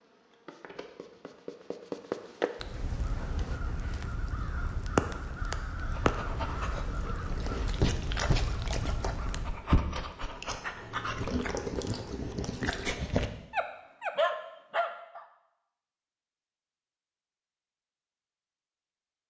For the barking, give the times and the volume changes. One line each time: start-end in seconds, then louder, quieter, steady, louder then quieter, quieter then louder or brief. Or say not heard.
6.0-15.2 louder.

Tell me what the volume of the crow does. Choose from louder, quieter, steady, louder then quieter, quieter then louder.
louder then quieter.